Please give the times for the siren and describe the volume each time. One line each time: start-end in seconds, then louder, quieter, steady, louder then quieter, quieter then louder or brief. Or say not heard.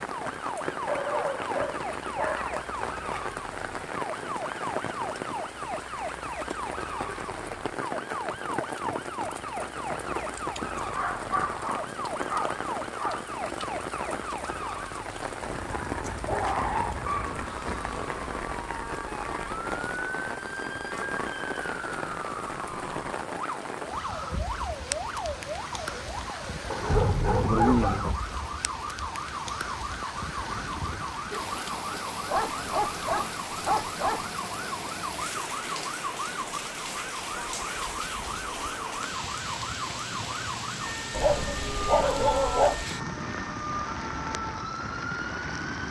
0.1-45.8 steady.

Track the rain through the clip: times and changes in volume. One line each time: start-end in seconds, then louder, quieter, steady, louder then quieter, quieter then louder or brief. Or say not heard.
0.0-45.8 steady.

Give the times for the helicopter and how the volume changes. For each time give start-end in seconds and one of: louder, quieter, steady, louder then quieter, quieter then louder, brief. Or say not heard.
not heard.